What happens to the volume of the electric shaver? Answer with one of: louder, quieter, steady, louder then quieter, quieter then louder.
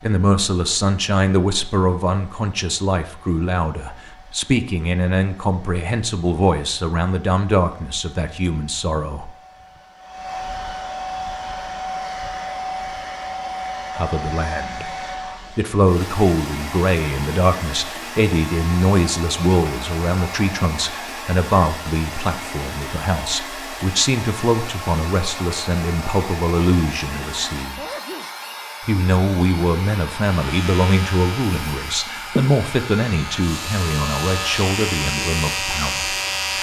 quieter then louder.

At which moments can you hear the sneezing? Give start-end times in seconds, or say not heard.
27.8-28.3.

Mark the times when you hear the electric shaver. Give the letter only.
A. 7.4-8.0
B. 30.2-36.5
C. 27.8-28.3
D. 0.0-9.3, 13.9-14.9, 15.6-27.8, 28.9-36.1
B.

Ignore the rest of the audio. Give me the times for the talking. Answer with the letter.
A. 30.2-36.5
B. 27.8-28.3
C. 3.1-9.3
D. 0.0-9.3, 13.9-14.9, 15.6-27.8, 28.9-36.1
D.